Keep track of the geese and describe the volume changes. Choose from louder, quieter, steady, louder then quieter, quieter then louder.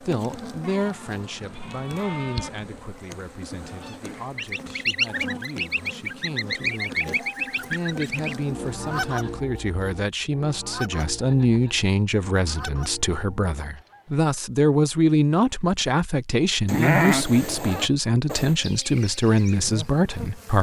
quieter.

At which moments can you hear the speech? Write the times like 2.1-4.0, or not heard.
0.1-20.5.